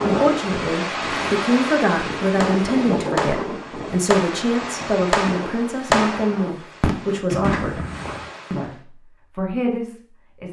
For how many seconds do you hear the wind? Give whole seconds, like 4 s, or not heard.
9 s.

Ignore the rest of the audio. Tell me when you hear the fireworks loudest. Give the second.
6 s.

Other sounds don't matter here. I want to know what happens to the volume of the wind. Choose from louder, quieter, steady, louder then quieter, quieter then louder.
quieter.